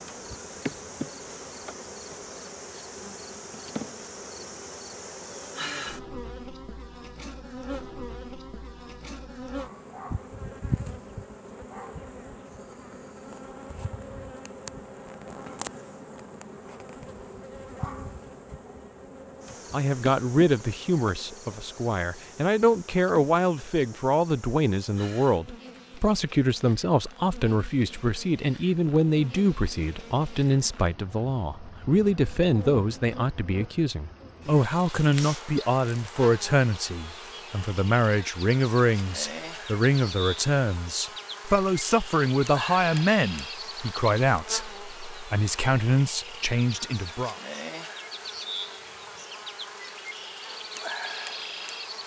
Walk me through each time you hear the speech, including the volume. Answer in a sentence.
You can hear the speech from 19.7 to 47.4 s, at a steady volume.